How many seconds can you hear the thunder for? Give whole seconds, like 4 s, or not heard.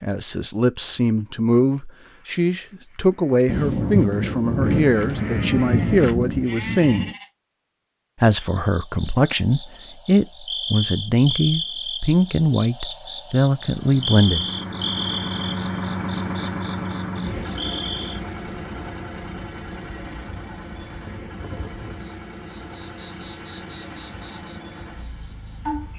4 s.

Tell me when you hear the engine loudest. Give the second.
16 s.